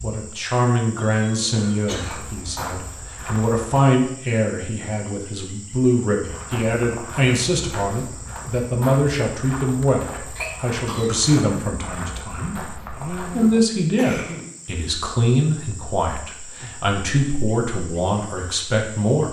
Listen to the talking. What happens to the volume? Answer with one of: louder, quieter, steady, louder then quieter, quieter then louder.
steady.